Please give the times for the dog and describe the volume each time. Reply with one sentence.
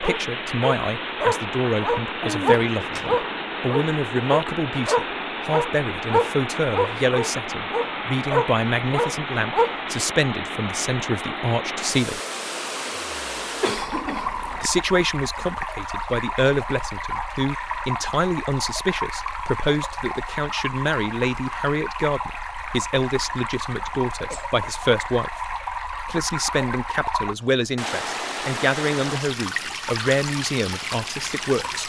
You can hear the dog from 0.0 to 9.8 s, at a steady volume.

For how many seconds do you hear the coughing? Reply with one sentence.
You can hear the coughing for 3 seconds altogether.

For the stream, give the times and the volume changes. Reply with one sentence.
You can hear the stream from 0.0 to 31.8 s, at a steady volume.